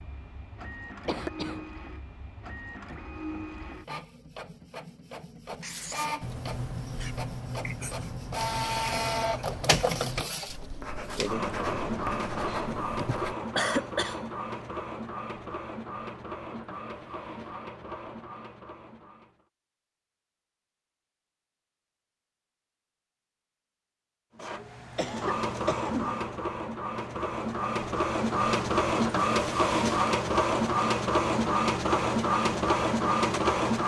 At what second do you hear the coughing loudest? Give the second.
14 s.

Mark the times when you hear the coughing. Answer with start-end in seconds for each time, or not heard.
1.1-1.6, 12.9-14.7, 24.9-26.2.